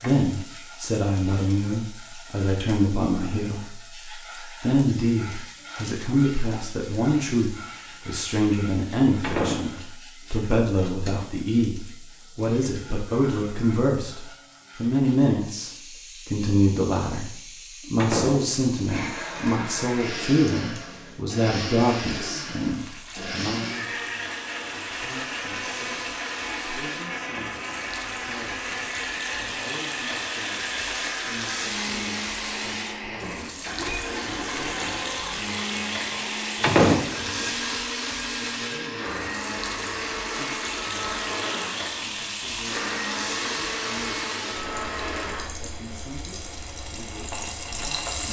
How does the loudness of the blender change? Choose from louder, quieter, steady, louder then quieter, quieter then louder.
steady.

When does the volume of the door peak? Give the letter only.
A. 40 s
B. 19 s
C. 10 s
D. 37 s
D.